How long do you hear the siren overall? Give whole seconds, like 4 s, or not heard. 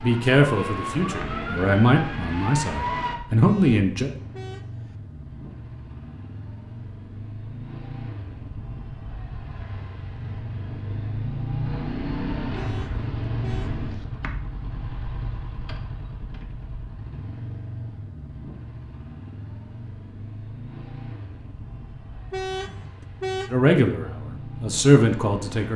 3 s.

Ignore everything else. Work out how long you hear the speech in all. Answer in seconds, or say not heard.
6 s.